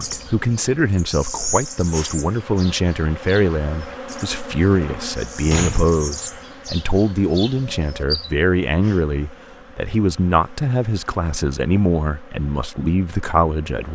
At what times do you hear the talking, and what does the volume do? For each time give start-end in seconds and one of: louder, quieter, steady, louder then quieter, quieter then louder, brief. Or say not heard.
0.0-13.9 steady.